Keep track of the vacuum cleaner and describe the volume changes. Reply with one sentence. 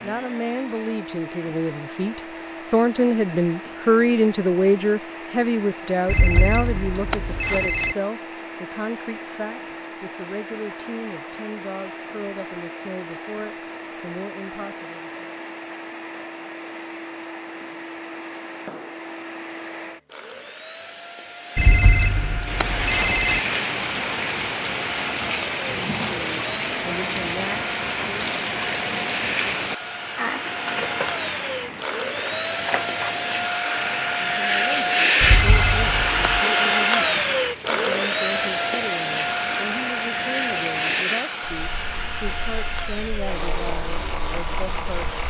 The loudness of the vacuum cleaner goes up.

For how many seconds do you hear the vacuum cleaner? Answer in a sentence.
You can hear the vacuum cleaner for 45 seconds altogether.